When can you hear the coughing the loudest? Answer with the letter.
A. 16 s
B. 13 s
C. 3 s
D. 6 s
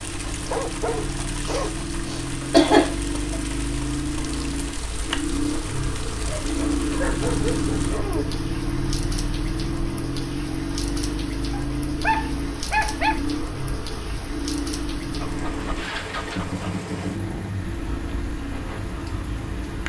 C.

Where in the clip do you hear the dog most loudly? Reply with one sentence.
The loudest moment of the dog is at 13 seconds.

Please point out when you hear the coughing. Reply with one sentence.
The coughing can be heard from 1.4 to 3.4 s.